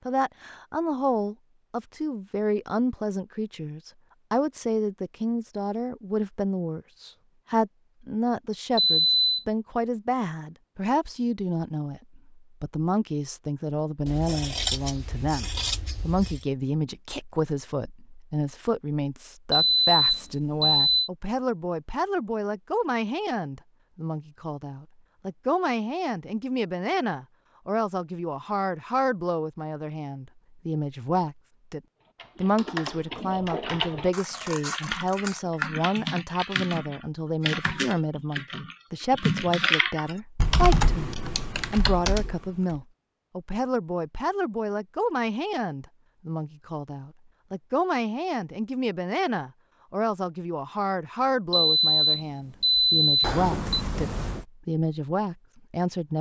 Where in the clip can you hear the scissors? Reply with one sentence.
The scissors can be heard from 14.1 to 16.4 s, from 34.1 to 35.4 s and from 53.2 to 54.5 s.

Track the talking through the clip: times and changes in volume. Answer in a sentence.
The talking can be heard from 0.1 to 56.1 s, at a steady volume.